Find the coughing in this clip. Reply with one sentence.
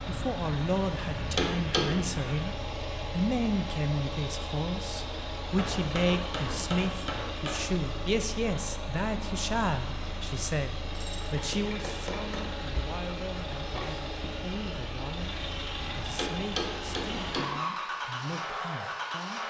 You can't hear the coughing here.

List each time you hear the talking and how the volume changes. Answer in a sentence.
The talking can be heard from 0.1 to 19.4 s, getting quieter.